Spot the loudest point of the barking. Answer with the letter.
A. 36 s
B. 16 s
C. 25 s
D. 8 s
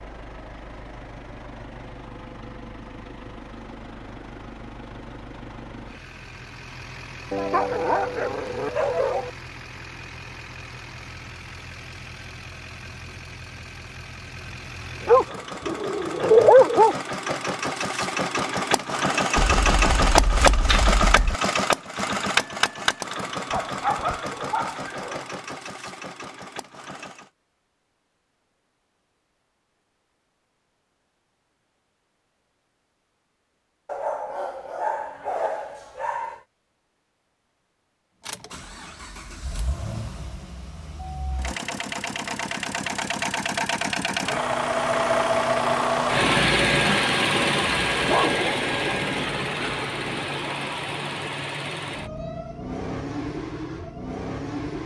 B.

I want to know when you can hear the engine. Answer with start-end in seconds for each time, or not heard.
0.0-27.3, 38.2-54.8.